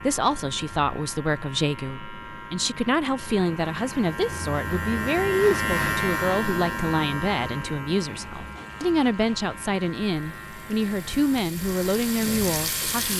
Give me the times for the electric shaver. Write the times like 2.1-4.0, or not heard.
0.0-13.1.